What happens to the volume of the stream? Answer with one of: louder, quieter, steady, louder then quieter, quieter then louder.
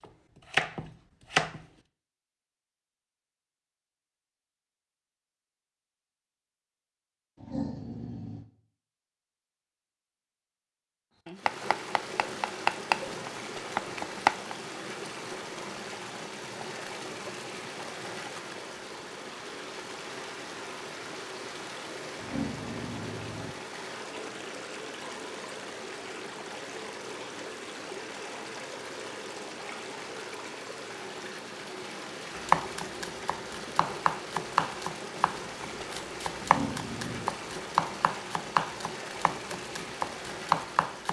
steady.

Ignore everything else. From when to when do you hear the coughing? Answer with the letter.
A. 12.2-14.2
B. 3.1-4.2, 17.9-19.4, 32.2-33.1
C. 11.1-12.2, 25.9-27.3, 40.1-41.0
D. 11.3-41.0
A.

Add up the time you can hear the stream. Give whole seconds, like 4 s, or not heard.
30 s.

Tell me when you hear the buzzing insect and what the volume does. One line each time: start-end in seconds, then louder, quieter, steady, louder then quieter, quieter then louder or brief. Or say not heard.
not heard.